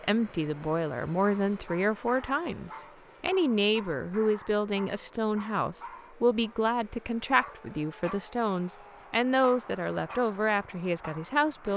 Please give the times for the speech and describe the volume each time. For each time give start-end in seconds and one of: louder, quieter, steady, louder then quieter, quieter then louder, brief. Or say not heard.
0.0-11.7 steady.